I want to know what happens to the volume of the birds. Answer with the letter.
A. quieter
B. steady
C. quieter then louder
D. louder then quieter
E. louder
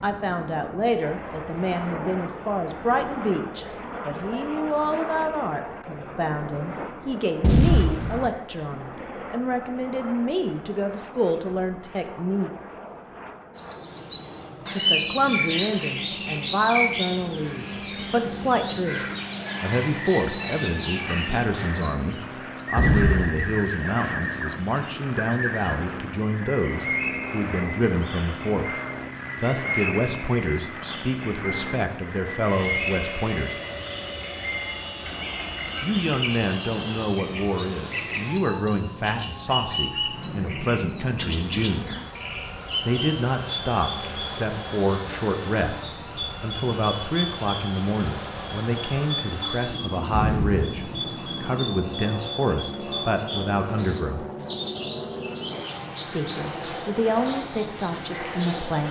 A.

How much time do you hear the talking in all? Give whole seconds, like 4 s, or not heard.
51 s.